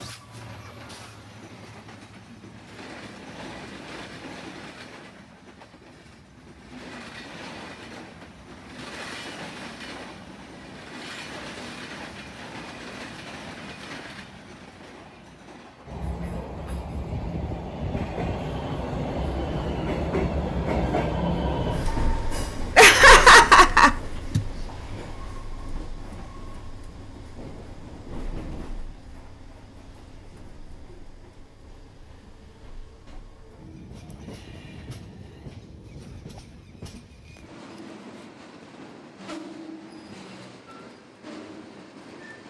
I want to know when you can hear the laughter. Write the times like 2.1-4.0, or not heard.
22.8-24.4.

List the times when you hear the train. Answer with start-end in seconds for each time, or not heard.
0.0-42.4.